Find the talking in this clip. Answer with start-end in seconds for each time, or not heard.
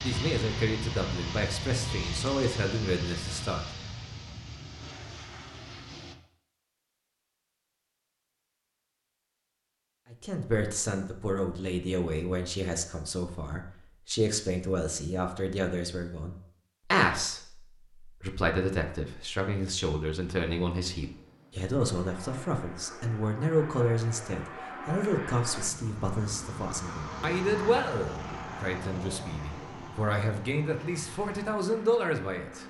0.0-3.6, 10.1-32.6.